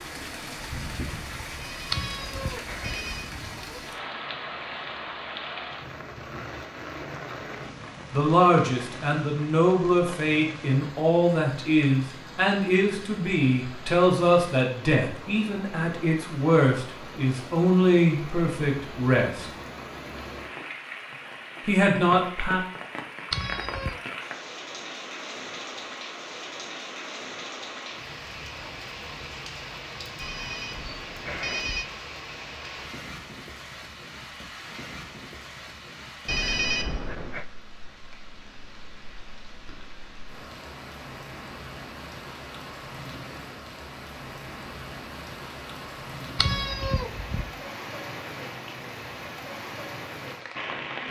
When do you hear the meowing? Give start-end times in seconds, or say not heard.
1.9-3.9, 23.3-24.0, 46.4-47.5.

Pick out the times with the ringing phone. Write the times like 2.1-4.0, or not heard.
1.6-3.4, 30.1-31.9, 36.2-37.5.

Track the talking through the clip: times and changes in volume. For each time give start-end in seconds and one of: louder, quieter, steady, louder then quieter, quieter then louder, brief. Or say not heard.
8.1-19.5 steady
21.6-22.6 brief.